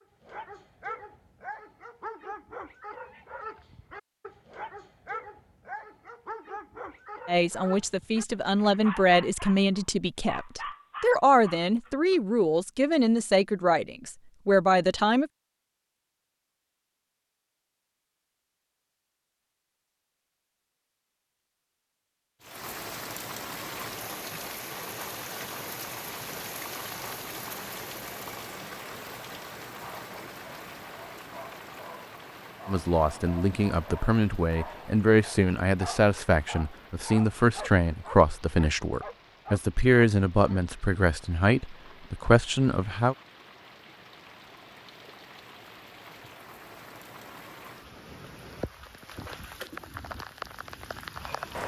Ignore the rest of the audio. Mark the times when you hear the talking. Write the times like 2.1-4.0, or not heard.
7.2-15.3, 32.6-43.1.